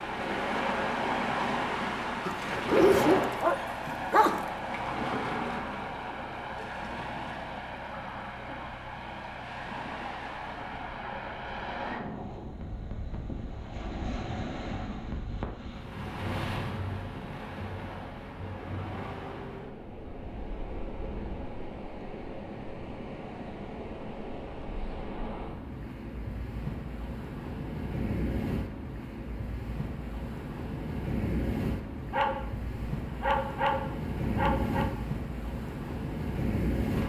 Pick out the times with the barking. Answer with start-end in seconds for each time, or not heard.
2.2-4.4, 32.1-34.9.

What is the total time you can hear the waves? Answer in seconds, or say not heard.
37 s.